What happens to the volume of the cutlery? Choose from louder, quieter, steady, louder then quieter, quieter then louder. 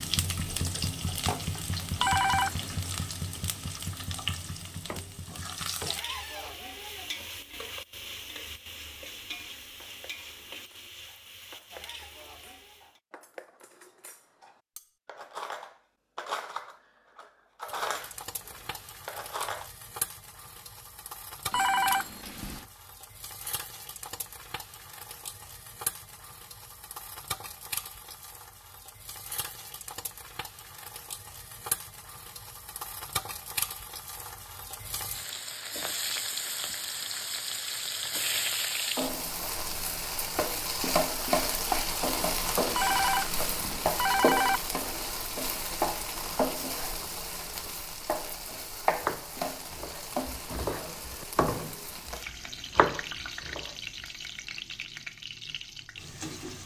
louder.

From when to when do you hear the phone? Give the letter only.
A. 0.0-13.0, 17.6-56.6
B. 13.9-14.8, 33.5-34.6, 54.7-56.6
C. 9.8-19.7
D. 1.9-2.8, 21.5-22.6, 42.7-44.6
D.